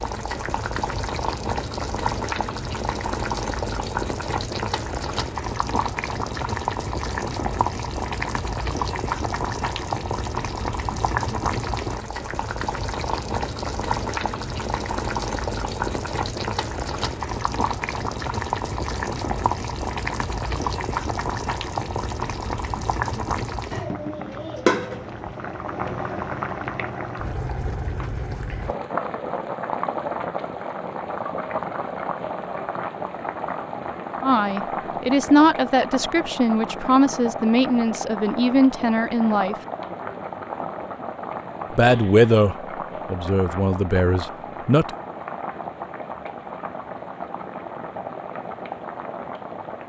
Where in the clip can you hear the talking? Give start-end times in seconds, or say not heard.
34.2-39.5, 41.7-44.9.